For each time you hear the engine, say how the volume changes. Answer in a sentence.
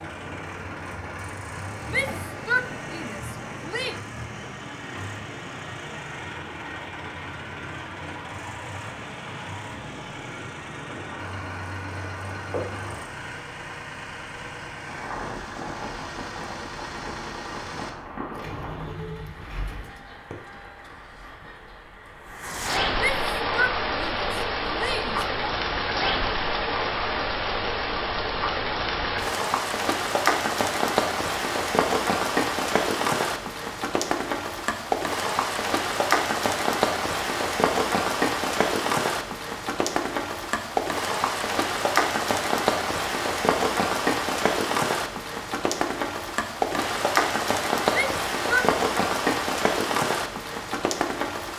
You can hear the engine from 0.0 to 21.5 s, at a steady volume.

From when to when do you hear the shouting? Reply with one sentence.
The shouting can be heard from 1.9 to 4.0 s, from 22.9 to 25.5 s and from 47.9 to 48.7 s.